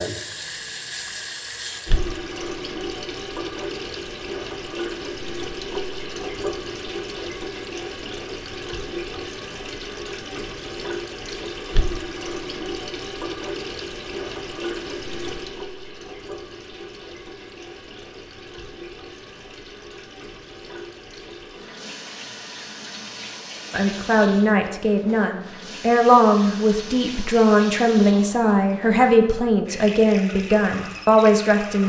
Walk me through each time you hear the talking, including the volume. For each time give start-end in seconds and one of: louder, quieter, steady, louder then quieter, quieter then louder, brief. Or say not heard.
23.7-31.8 steady.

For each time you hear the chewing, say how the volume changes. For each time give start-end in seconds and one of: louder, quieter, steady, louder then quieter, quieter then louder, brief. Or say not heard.
not heard.